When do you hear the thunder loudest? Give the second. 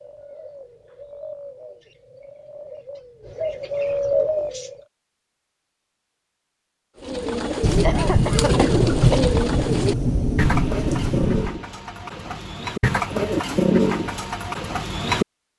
9 s.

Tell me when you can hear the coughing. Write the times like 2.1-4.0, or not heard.
7.8-9.2.